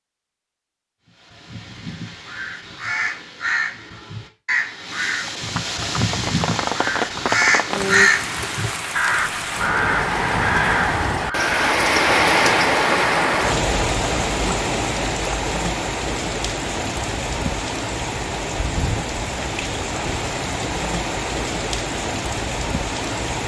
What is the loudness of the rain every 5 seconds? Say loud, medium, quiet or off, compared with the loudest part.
off, medium, loud, medium, medium.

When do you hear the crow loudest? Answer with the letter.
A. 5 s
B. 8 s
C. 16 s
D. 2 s
B.